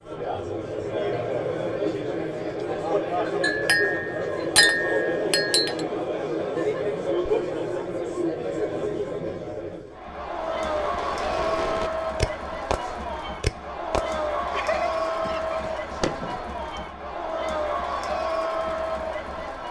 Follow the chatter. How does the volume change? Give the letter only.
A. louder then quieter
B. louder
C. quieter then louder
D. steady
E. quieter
D.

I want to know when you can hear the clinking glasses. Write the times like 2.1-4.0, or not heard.
3.4-5.8.